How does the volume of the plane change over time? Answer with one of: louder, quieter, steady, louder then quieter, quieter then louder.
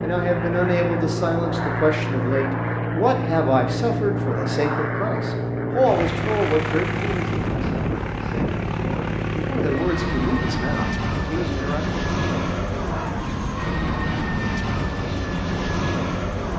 steady.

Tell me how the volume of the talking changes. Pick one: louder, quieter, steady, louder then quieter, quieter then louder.
quieter then louder.